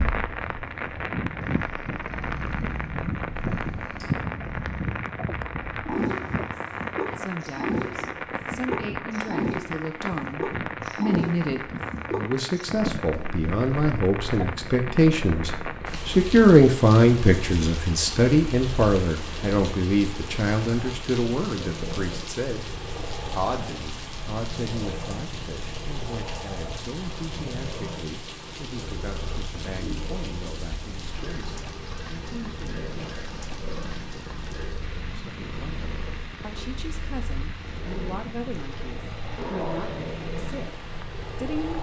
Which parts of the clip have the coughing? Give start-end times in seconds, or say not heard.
39.4-40.2.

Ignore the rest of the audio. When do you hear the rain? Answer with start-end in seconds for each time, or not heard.
0.0-41.7.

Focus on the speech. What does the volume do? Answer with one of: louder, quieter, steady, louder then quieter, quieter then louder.
louder then quieter.